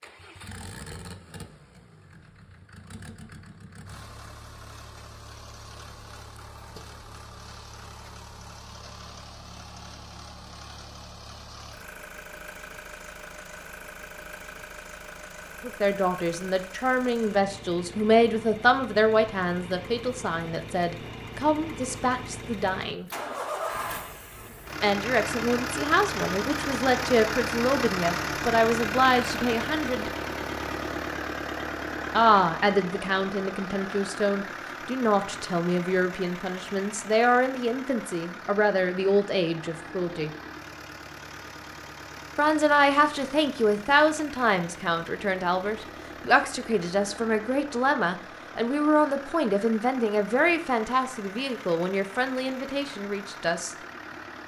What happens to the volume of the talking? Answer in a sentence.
The volume of the talking stays about the same.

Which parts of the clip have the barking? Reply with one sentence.
You can't hear the barking here.